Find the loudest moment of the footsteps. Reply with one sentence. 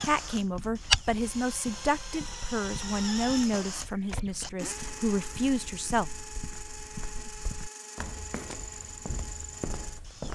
The volume of the footsteps peaks at 1 second.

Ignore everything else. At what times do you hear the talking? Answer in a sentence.
The talking can be heard from 0.0 to 6.1 s.